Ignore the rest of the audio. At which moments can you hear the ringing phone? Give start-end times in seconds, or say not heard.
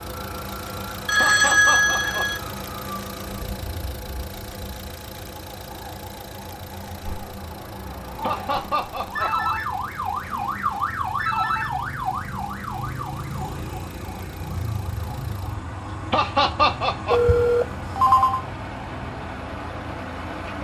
1.1-2.4, 9.2-11.7, 17.1-18.4.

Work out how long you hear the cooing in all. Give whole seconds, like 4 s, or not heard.
not heard.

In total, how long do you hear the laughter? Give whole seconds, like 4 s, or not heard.
3 s.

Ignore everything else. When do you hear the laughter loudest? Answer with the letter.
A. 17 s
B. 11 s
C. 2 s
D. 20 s
A.